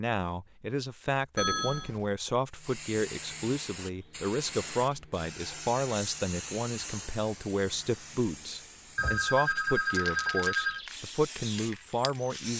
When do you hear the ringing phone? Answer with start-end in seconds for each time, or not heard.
1.4-2.1, 8.9-10.8.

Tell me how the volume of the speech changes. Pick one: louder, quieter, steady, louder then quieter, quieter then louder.
steady.